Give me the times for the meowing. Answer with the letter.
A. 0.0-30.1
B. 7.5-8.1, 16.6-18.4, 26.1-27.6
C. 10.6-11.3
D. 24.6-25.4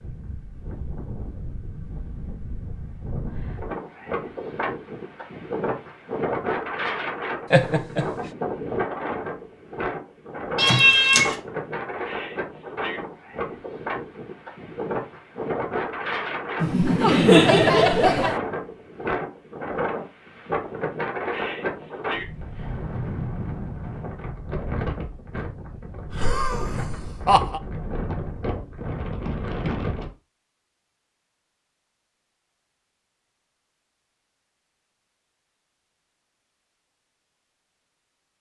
C.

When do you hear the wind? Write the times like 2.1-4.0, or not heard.
0.0-30.1.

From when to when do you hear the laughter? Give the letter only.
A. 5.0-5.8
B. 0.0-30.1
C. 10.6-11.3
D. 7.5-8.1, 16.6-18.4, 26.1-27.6
D.